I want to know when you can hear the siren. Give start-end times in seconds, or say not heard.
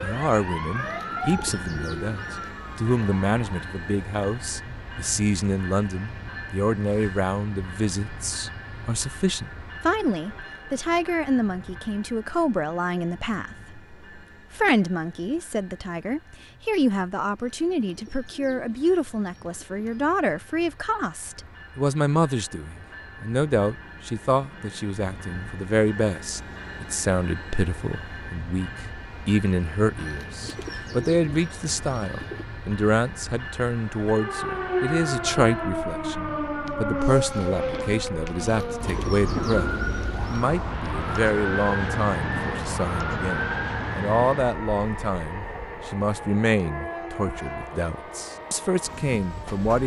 0.0-3.6, 34.1-49.8.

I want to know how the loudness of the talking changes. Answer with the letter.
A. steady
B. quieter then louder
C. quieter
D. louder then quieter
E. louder
A.